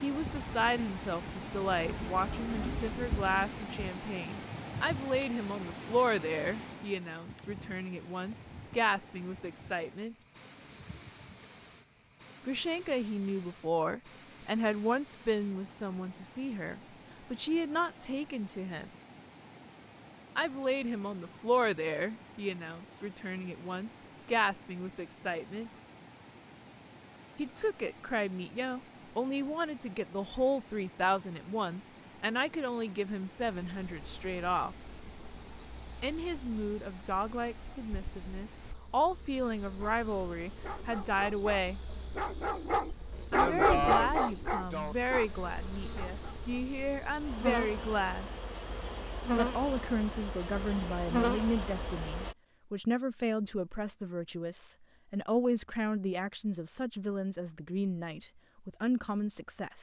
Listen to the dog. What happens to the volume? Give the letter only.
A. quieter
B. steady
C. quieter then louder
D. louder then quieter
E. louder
D.